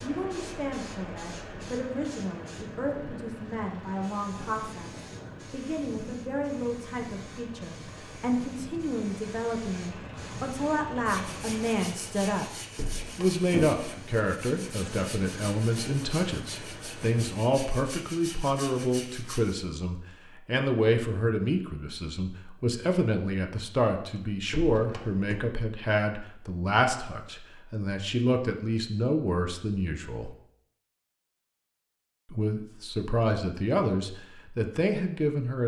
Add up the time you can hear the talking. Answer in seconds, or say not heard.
33 s.